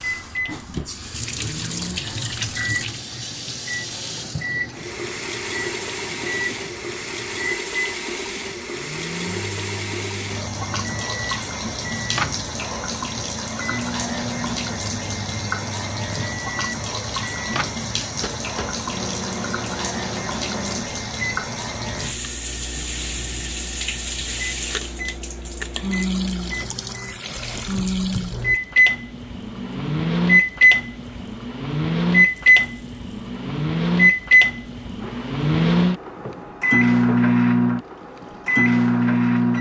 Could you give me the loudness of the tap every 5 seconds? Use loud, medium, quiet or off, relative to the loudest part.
loud, loud, loud, loud, loud, loud, quiet, quiet.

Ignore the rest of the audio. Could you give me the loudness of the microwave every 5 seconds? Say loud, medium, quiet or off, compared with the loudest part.
quiet, quiet, quiet, quiet, quiet, medium, loud, loud.